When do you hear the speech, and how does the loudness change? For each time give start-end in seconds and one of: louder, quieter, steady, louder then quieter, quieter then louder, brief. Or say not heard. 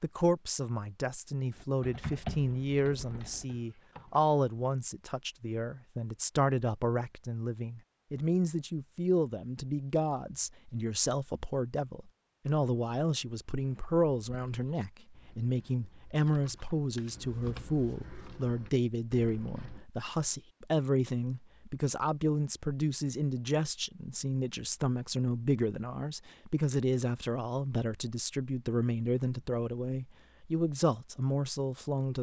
0.0-32.1 steady.